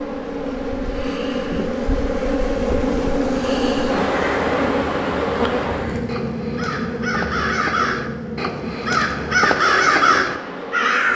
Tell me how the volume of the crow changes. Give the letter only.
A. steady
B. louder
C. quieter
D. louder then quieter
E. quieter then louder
B.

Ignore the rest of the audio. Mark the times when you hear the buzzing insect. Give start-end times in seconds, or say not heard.
0.0-11.1.